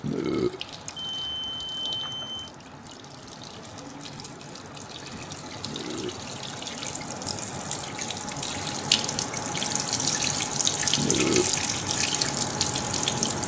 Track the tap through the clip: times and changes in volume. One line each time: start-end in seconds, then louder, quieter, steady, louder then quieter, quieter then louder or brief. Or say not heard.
0.0-13.4 louder.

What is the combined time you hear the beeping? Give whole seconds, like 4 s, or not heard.
2 s.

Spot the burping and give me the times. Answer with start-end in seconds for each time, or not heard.
0.0-0.6, 5.7-6.2, 10.9-11.6.